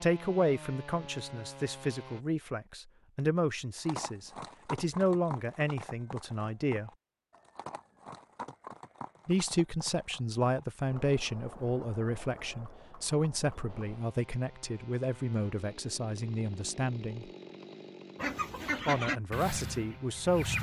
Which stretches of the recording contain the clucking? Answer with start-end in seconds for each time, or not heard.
18.1-20.5.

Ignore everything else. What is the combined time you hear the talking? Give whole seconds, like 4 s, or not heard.
17 s.